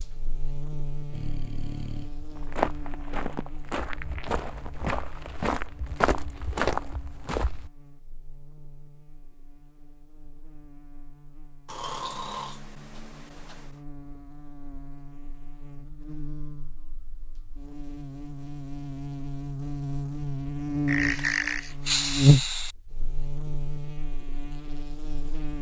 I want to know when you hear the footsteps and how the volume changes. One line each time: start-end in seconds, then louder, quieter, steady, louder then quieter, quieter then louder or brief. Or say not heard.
2.4-7.7 louder.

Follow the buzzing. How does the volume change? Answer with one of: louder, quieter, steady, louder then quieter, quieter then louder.
quieter then louder.